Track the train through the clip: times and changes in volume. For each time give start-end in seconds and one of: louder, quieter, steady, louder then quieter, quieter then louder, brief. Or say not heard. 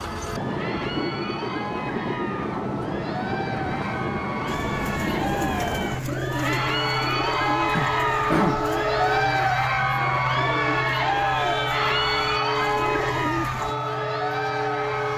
0.0-15.1 steady.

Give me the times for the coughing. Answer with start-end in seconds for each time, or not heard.
7.8-8.8.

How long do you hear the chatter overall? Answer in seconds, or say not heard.
15 s.